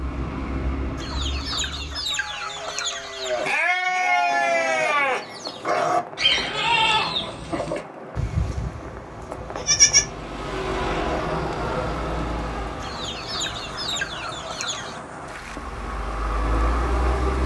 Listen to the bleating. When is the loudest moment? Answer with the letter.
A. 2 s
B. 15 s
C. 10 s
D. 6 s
C.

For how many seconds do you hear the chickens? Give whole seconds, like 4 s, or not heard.
5 s.